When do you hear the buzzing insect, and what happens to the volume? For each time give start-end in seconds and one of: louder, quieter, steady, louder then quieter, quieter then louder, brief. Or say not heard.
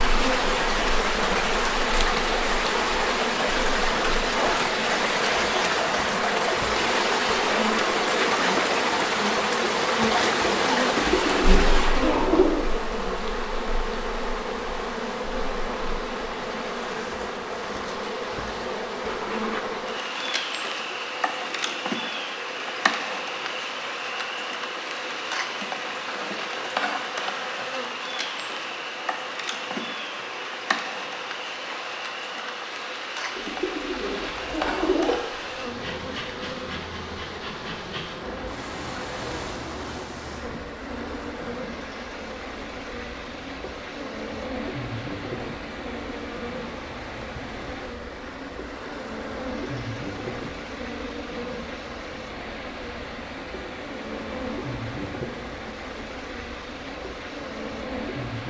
0.0-58.4 quieter.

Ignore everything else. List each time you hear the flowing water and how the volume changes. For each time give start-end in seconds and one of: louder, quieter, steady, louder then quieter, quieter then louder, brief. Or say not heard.
0.0-58.4 quieter.